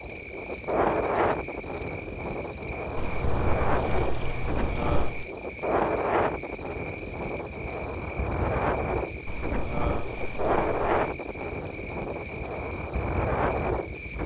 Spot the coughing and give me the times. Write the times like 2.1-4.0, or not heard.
not heard.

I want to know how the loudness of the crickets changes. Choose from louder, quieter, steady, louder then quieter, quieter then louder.
steady.